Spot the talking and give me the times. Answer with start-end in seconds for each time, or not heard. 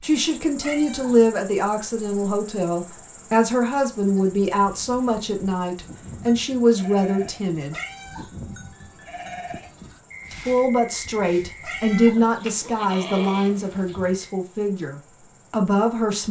0.0-7.8, 10.3-16.2.